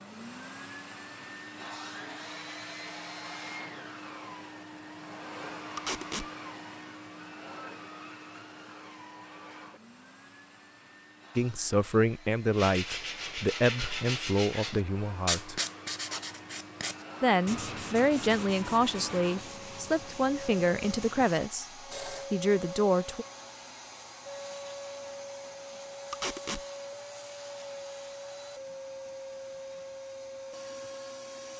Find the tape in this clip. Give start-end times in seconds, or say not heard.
5.8-6.2, 26.1-26.6.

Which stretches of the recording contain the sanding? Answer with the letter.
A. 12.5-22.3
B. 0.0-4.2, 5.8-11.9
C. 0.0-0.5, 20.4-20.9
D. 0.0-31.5
A.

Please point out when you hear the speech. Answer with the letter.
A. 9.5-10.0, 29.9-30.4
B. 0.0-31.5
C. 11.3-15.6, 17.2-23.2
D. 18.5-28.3
C.